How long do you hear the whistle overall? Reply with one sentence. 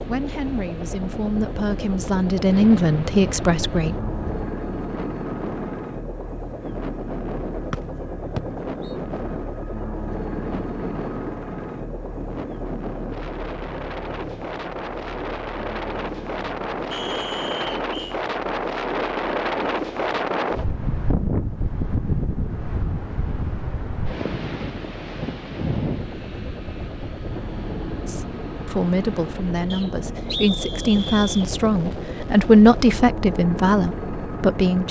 You can hear the whistle for 4 seconds altogether.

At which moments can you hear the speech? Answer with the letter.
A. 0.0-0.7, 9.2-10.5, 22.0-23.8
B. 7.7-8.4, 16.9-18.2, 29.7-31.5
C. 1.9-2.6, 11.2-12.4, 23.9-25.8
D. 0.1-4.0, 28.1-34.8
D.